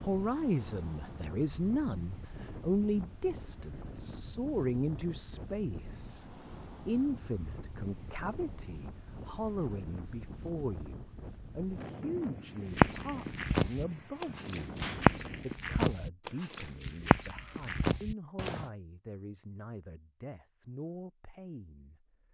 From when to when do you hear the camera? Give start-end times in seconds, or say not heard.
not heard.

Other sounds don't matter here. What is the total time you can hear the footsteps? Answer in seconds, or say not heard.
6 s.